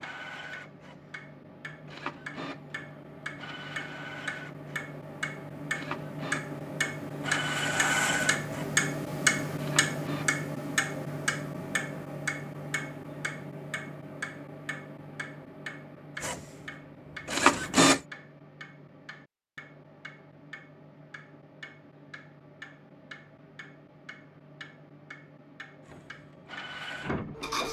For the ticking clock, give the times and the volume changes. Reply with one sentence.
You can hear the ticking clock from 0.0 to 27.6 s, getting louder then quieter.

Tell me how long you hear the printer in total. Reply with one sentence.
The printer can be heard for 14 seconds in total.